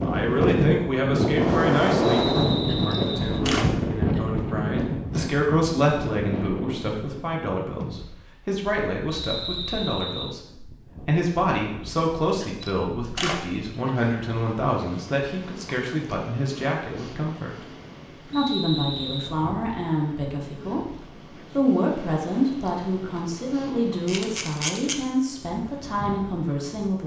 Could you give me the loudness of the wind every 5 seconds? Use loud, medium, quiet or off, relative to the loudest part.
loud, medium, quiet, quiet, quiet, quiet.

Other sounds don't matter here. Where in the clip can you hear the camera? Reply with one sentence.
You can hear the camera from 2.5 to 4.2 s, from 12.3 to 13.9 s and from 24.1 to 24.9 s.